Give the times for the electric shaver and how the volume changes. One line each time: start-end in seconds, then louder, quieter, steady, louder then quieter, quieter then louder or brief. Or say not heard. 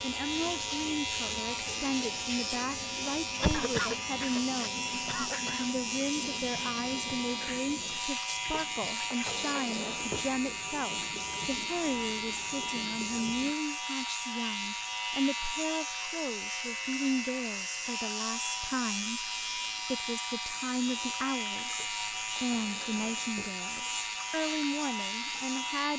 0.0-25.9 steady.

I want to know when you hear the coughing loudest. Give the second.
4 s.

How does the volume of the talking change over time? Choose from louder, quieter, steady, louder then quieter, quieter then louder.
steady.